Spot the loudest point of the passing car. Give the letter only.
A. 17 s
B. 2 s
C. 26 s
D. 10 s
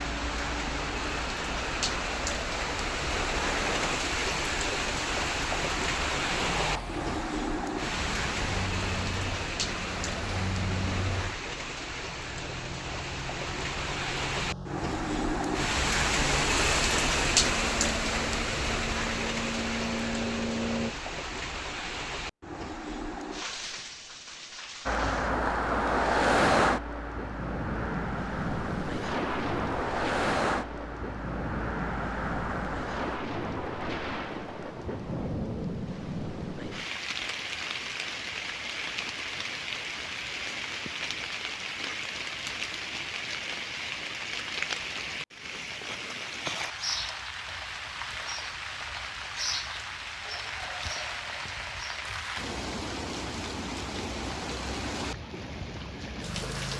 C.